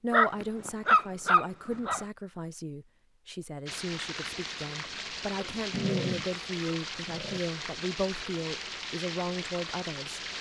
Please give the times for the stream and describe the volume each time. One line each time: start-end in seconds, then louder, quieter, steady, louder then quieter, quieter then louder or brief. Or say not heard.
3.6-10.3 steady.